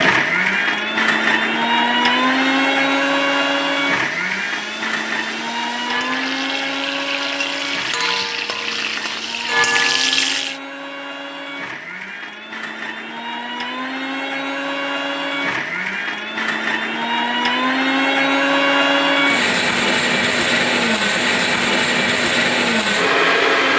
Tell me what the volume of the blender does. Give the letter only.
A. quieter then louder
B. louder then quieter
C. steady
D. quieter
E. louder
A.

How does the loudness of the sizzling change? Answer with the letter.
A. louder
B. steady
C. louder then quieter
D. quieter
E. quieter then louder
A.